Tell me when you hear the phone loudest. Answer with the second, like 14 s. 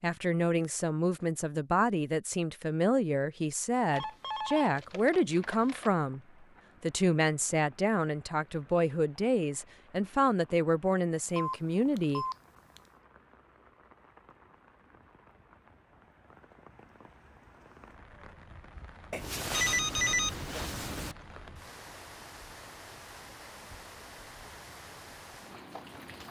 20 s.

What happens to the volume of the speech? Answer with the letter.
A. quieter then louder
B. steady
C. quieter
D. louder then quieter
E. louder
B.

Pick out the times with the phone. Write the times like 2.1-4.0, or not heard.
3.9-5.9, 11.2-12.8, 19.1-21.1.